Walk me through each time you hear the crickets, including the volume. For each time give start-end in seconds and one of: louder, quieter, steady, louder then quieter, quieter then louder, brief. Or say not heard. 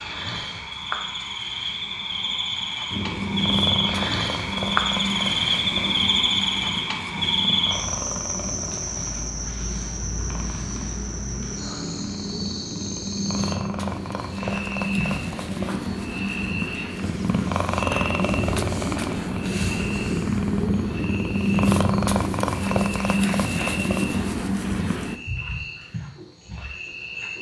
0.0-27.3 quieter.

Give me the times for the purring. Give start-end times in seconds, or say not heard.
2.9-25.2.